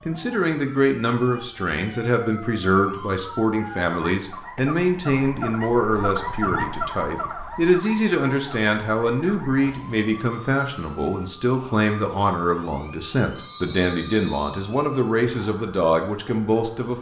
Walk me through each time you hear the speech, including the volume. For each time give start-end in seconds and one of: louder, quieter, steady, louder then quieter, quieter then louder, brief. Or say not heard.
0.1-16.9 steady.